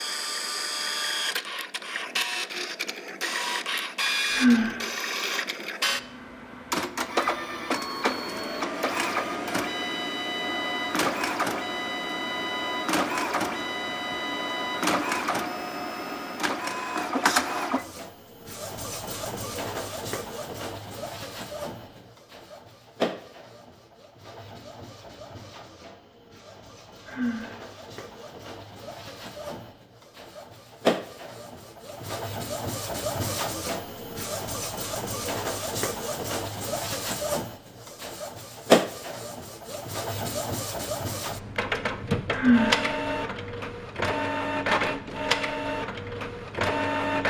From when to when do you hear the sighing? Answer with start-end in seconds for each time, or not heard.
4.3-4.8, 27.1-27.6, 42.3-42.9.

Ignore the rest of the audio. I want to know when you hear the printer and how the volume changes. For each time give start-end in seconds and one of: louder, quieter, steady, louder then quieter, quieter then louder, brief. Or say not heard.
0.0-47.2 quieter then louder.